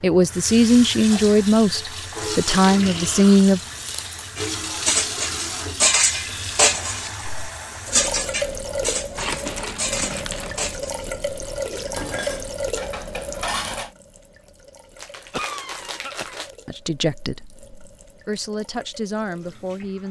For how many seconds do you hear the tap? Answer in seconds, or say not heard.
20 s.